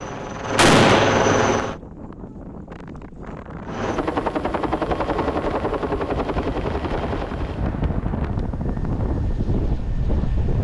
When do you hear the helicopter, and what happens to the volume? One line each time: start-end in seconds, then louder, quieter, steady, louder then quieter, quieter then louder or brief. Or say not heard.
0.0-1.8 brief
3.6-10.5 quieter.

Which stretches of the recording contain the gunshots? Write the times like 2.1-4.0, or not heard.
0.6-1.8.